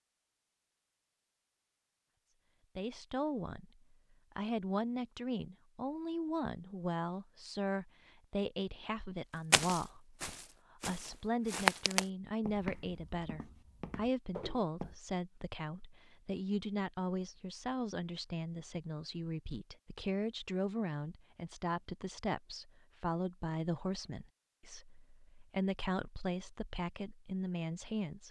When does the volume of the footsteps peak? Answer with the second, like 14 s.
12 s.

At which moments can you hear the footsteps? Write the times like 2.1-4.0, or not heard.
9.5-14.9.